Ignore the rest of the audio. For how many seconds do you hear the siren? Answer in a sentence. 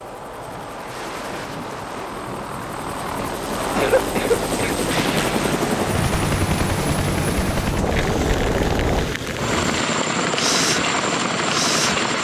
You can't hear the siren here.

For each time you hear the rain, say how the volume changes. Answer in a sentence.
You can hear the rain from 0.0 to 12.1 s, getting louder.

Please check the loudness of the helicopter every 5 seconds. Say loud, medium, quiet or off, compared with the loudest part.
medium, loud, loud.